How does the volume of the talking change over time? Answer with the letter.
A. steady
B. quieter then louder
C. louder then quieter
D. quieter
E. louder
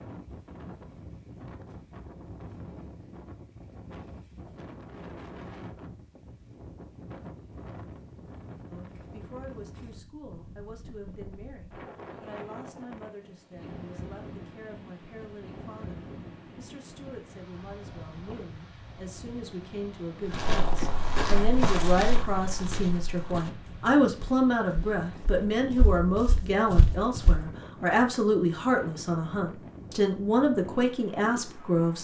E.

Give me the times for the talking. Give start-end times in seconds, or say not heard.
8.7-31.9.